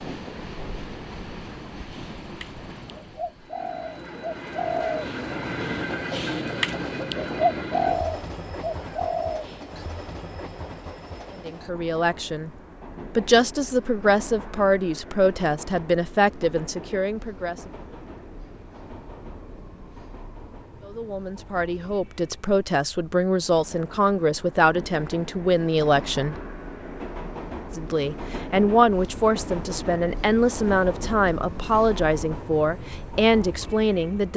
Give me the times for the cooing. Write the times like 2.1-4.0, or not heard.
1.9-9.7.